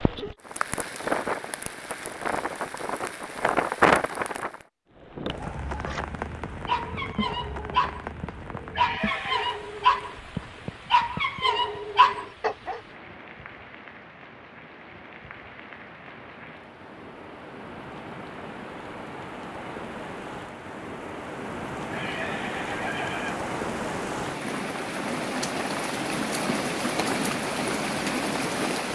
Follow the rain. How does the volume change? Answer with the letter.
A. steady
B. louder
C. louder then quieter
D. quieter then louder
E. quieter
D.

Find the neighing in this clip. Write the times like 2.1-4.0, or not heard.
8.7-9.6, 21.9-23.4.